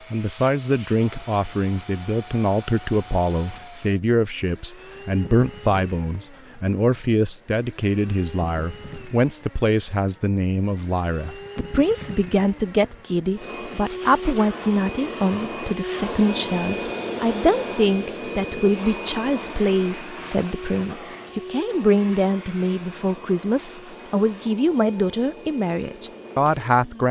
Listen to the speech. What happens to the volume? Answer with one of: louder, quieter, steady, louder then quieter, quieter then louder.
steady.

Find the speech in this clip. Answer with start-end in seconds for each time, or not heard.
0.1-27.0.